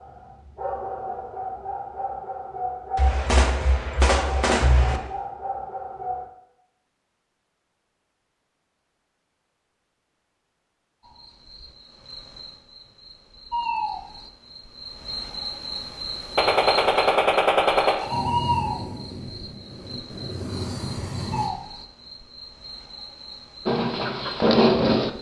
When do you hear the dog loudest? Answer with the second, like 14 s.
25 s.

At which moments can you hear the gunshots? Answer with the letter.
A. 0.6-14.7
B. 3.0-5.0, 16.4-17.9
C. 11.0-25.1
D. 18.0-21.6
B.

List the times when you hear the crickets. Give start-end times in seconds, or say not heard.
11.0-25.1.